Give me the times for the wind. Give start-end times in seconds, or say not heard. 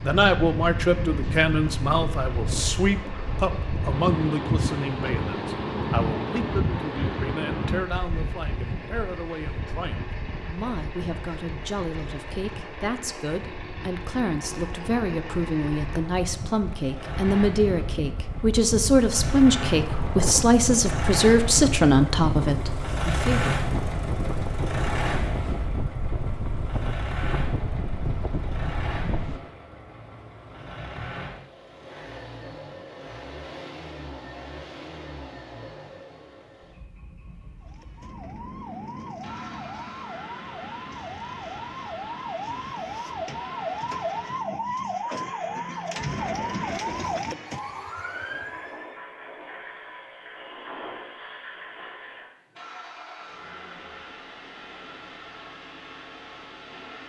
0.0-29.4.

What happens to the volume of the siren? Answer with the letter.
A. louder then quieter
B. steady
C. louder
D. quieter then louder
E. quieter
C.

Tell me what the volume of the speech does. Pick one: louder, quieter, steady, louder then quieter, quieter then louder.
quieter then louder.